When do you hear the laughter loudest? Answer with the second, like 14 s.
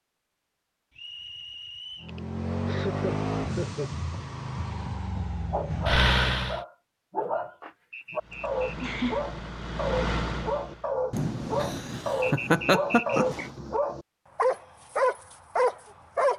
13 s.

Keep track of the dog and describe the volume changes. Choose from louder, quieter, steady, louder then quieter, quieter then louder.
louder.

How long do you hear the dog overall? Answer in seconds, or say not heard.
11 s.